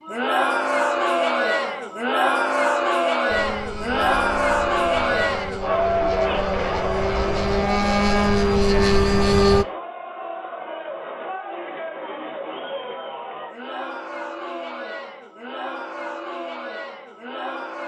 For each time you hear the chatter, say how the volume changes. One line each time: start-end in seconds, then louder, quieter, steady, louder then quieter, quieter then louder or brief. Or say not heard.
0.0-17.8 quieter.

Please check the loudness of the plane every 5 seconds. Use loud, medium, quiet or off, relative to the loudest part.
quiet, loud, off, off.